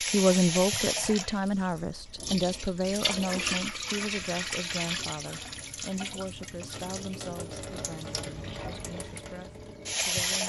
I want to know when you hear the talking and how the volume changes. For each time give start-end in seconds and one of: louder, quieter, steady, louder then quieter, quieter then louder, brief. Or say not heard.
0.0-10.4 quieter.